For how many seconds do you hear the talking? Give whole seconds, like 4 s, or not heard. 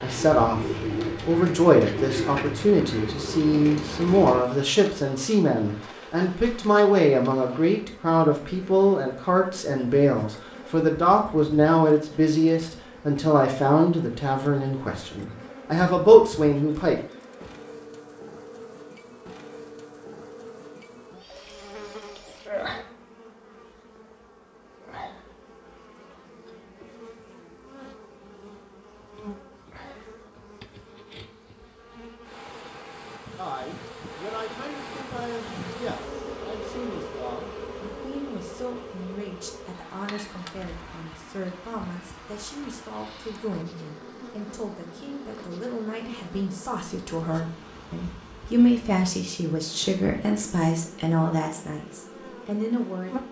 37 s.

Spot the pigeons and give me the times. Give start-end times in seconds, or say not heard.
0.0-4.5.